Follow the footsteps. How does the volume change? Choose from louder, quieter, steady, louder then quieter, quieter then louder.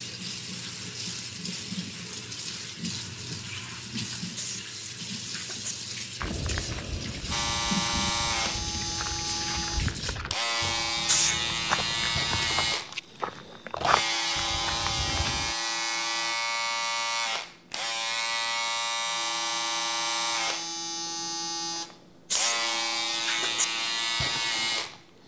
louder.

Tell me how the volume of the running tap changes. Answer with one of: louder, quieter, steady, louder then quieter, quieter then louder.
steady.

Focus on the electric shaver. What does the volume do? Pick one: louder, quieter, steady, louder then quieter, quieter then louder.
steady.